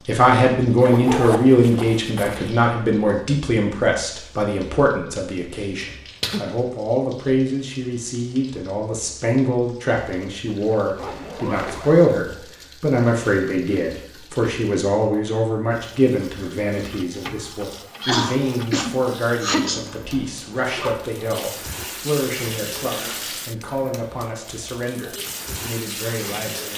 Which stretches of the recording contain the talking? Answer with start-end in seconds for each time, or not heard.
0.1-26.7.